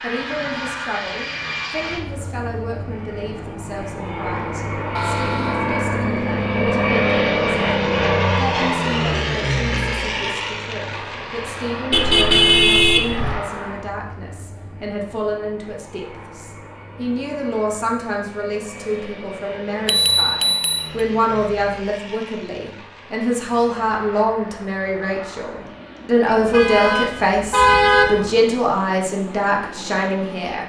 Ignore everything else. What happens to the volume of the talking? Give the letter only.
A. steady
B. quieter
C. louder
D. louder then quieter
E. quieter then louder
C.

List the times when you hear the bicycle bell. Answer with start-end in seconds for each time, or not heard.
19.9-20.9.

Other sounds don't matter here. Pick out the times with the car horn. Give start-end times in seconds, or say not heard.
5.0-5.8, 11.9-13.4, 26.2-28.4.